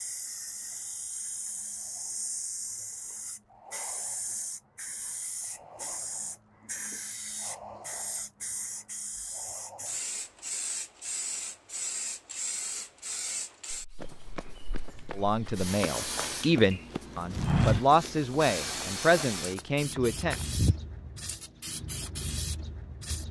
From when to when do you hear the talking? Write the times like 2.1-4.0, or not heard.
15.2-20.4.